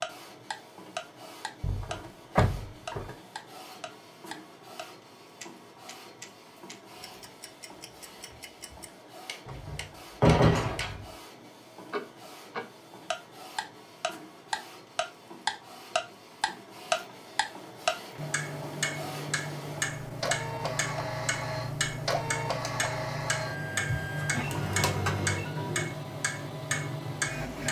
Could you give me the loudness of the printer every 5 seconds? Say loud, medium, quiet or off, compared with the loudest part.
quiet, quiet, quiet, medium, loud, loud.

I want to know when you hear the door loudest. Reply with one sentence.
The volume of the door peaks at 10 seconds.